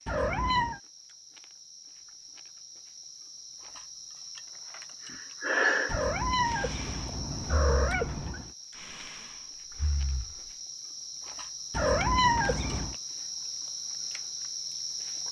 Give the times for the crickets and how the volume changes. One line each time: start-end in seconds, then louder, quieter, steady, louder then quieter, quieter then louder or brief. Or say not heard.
0.0-15.2 louder.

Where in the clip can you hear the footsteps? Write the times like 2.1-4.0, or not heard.
not heard.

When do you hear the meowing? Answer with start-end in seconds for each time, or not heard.
0.1-0.8, 5.8-8.5, 11.7-12.9.